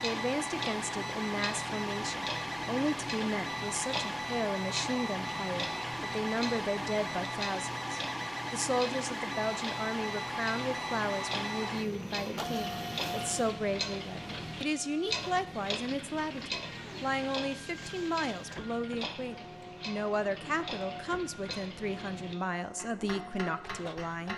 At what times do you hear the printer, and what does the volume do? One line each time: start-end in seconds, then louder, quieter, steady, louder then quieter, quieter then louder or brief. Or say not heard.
0.0-24.3 quieter.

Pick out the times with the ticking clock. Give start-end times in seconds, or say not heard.
0.0-24.3.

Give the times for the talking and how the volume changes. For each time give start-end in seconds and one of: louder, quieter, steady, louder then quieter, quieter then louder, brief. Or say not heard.
0.0-24.3 steady.